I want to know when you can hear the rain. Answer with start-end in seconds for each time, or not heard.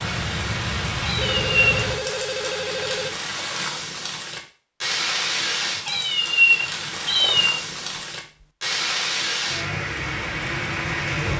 0.0-11.3.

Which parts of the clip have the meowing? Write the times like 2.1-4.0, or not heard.
1.0-1.9, 5.8-7.6.